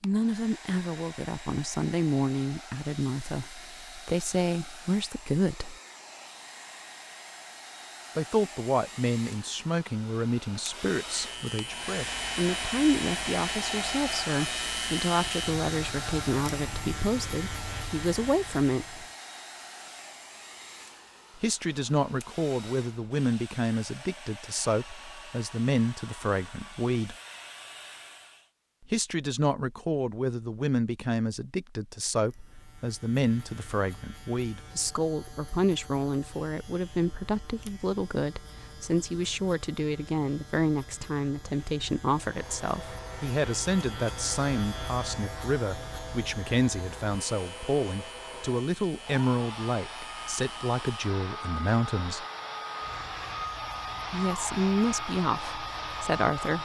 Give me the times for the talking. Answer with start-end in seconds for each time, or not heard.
0.0-5.8, 8.2-19.1, 21.4-27.1, 28.9-52.2, 54.1-56.6.